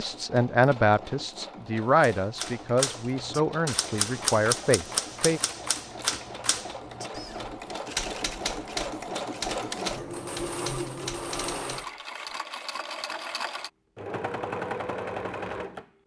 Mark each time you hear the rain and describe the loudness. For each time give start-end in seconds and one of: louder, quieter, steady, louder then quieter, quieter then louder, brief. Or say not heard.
not heard.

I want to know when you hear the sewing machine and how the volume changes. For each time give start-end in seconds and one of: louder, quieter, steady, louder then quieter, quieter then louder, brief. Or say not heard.
0.0-15.9 louder.